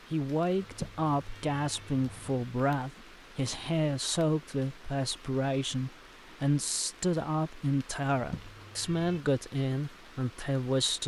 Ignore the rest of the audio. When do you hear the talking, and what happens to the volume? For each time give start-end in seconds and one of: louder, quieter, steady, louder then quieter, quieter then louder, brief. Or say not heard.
0.1-11.0 steady.